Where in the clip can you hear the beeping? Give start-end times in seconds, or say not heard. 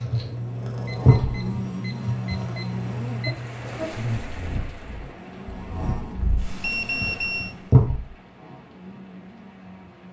0.8-3.4, 6.6-7.5.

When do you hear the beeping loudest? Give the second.
7 s.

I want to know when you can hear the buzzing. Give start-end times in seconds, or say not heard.
0.0-10.0.